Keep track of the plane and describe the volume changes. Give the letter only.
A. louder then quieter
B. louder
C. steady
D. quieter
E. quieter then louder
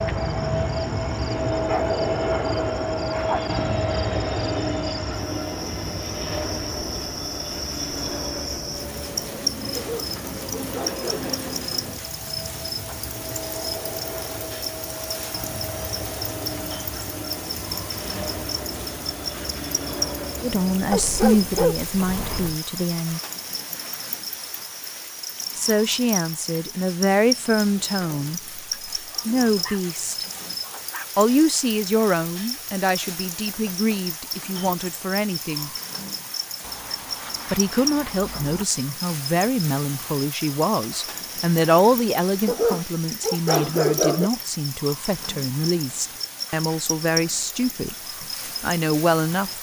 D.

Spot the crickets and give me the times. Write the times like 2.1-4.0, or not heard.
0.0-49.5.